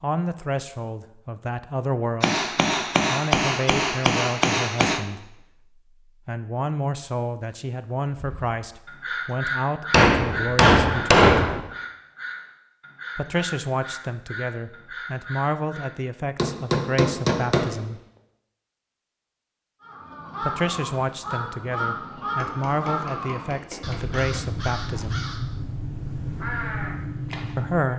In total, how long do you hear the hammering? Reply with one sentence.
The hammering can be heard for 8 seconds in total.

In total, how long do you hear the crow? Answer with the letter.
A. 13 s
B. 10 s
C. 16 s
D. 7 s
C.